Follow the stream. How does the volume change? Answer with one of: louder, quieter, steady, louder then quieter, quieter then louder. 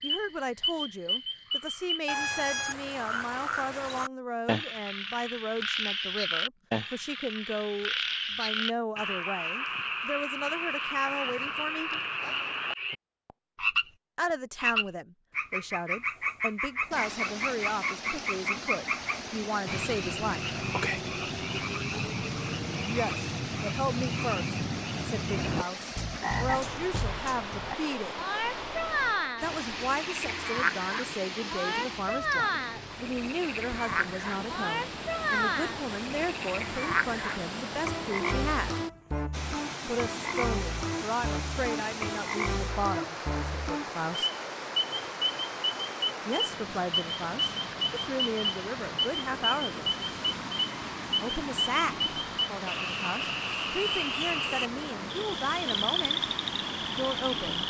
steady.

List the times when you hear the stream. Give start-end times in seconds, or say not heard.
16.9-57.6.